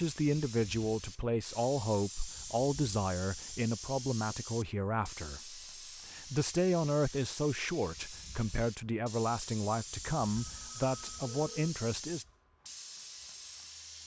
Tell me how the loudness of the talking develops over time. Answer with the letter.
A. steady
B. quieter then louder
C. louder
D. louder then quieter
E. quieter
A.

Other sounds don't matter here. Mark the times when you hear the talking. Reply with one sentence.
The talking can be heard from 0.0 to 12.2 s.